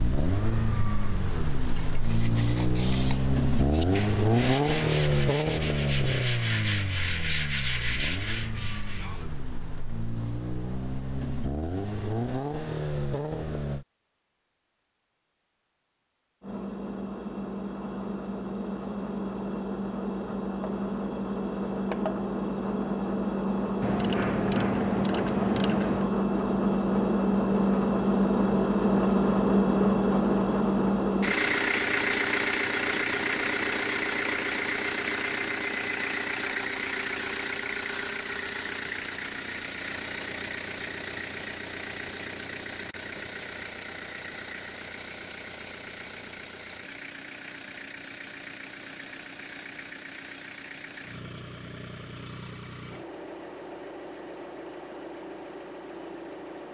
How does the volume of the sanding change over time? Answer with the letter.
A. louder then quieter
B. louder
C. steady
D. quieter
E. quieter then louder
B.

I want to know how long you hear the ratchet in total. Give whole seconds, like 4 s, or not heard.
2 s.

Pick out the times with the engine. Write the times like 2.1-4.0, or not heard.
0.0-13.8, 16.4-56.6.